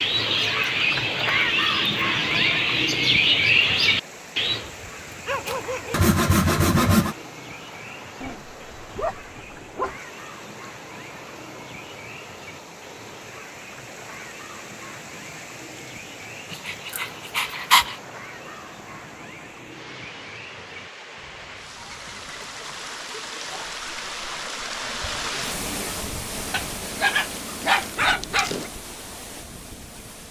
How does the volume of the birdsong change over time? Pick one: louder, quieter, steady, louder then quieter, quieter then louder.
quieter.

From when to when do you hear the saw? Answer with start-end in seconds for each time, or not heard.
5.5-7.2.